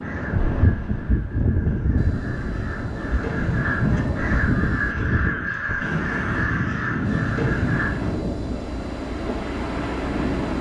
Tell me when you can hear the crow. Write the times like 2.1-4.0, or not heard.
0.0-7.9.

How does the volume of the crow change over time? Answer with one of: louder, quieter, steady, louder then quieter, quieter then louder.
louder.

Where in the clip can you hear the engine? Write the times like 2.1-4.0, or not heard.
1.9-5.0, 7.0-10.5.